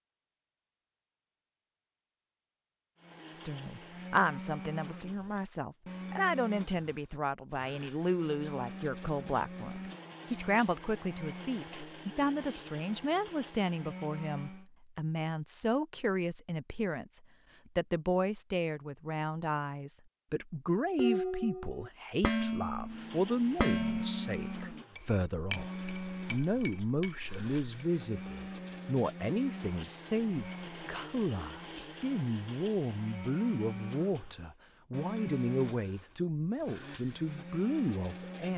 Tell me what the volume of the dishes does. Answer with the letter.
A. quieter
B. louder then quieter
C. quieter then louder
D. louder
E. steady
A.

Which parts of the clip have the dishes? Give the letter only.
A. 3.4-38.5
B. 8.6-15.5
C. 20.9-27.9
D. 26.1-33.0
C.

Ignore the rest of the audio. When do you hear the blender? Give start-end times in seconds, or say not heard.
3.0-14.7, 22.9-38.5.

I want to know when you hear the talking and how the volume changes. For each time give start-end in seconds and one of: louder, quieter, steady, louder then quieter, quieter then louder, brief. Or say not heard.
3.4-38.5 steady.